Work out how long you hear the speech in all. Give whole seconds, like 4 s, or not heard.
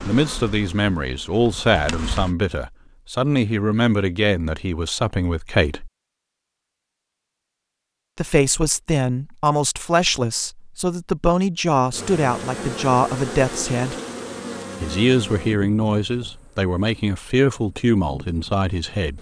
16 s.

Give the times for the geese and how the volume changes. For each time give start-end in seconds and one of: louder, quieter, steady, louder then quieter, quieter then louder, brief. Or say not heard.
not heard.